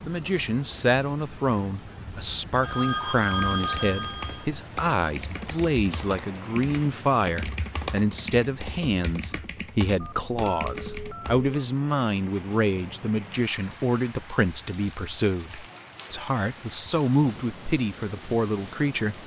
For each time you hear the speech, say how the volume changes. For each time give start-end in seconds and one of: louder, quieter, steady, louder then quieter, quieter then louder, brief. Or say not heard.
0.0-19.2 steady.